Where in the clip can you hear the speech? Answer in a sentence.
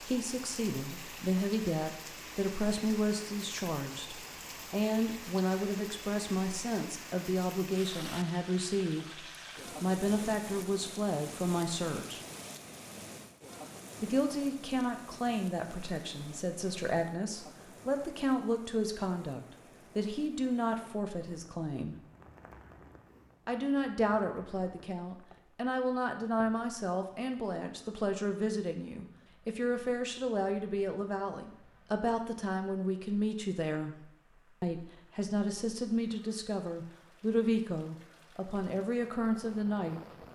You can hear the speech from 0.0 to 9.2 s, from 9.8 to 12.2 s, from 14.0 to 21.9 s, from 23.4 to 34.0 s and from 34.6 to 40.0 s.